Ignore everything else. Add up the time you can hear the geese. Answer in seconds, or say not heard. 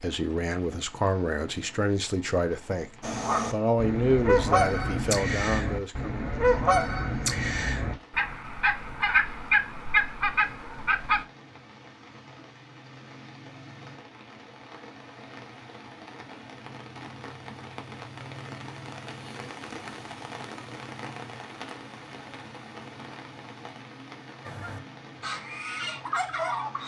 11 s.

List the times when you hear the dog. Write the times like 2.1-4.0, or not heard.
not heard.